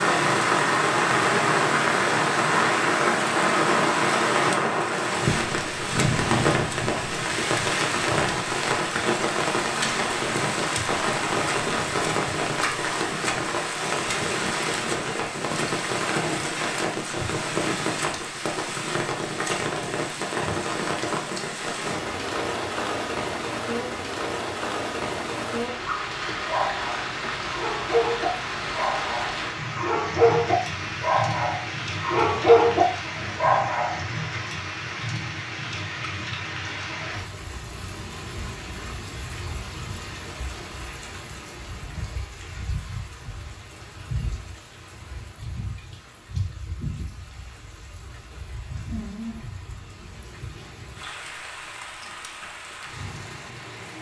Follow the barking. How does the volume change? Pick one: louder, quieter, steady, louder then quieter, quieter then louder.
louder.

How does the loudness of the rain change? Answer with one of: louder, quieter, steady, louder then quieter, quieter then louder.
quieter.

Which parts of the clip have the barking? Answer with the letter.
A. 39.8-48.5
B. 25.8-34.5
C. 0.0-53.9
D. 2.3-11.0
B.